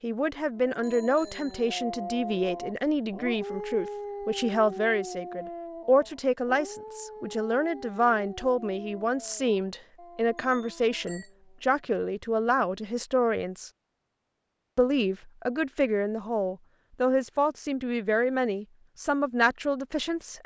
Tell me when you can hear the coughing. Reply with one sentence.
The coughing can't be heard in this clip.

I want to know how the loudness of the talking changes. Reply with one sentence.
The loudness of the talking stays about the same.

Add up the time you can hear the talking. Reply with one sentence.
The talking can be heard for 19 seconds in total.